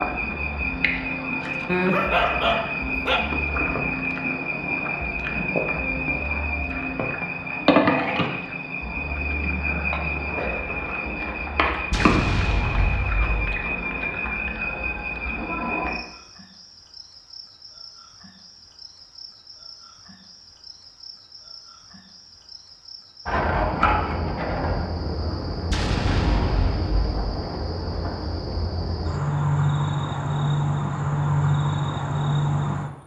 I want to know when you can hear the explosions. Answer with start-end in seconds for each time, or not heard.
11.9-13.7, 25.7-27.4.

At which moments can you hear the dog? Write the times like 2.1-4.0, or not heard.
1.6-3.2.